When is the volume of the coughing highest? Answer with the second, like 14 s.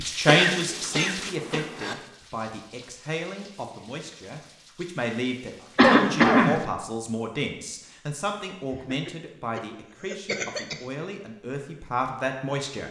6 s.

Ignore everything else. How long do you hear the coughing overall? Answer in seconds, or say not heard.
5 s.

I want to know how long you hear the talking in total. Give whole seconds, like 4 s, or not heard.
13 s.